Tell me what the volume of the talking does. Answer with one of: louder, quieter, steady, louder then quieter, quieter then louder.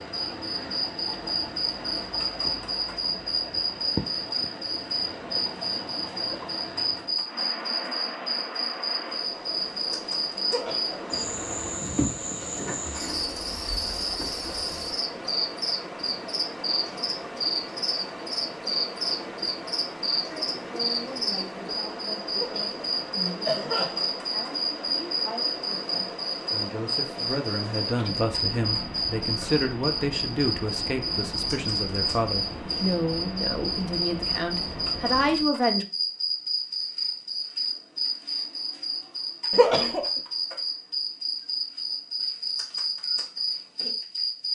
louder.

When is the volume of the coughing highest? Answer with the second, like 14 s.
40 s.